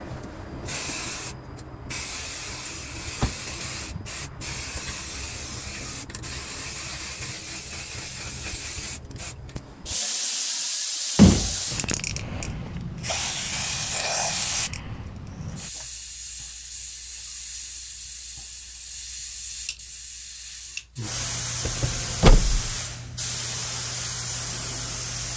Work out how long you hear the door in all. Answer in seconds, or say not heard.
3 s.